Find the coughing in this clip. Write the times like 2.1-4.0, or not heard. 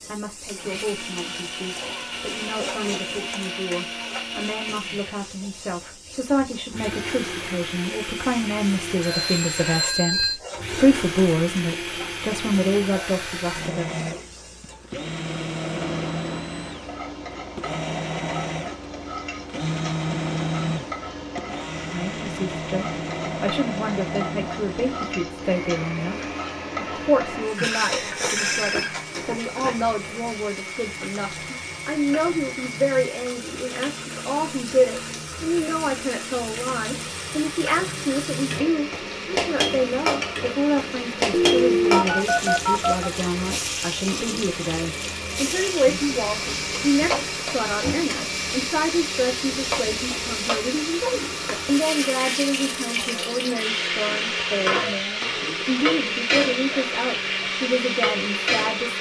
not heard.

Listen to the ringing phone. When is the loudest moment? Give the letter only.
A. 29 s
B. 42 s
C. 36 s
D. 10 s
B.